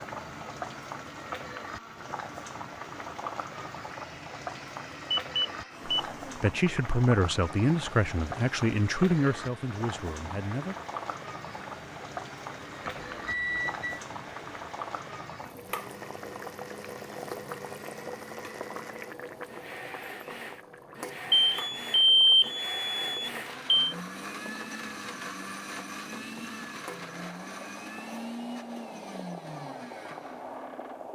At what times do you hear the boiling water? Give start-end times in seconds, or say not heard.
0.0-31.1.